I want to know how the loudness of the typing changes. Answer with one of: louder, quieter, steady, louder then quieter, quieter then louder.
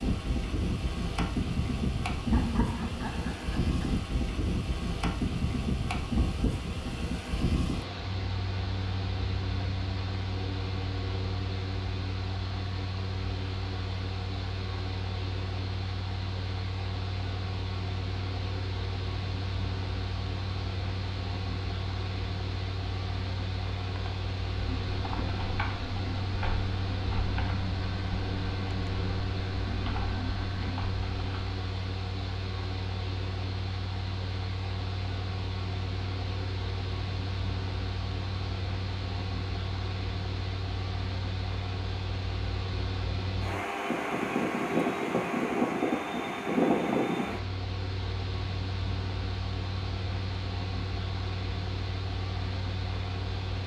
steady.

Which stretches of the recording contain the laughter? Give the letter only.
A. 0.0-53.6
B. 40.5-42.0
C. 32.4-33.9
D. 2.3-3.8
D.